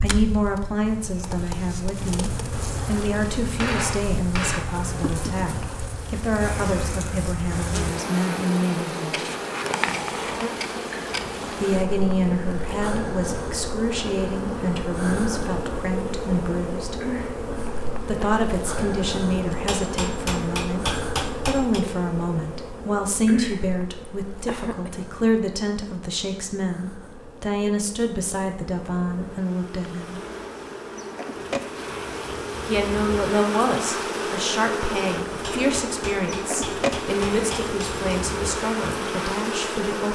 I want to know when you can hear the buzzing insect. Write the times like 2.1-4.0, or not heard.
0.0-40.1.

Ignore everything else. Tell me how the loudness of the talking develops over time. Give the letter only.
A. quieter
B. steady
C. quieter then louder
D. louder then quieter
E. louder
B.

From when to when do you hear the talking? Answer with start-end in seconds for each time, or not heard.
0.0-9.2, 11.6-16.9, 18.0-30.2, 32.6-40.1.